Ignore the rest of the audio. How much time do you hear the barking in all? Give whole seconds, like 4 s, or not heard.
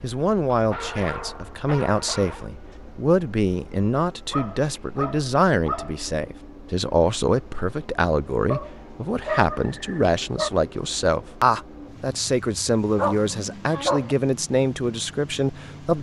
7 s.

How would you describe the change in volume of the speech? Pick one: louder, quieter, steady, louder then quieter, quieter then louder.
steady.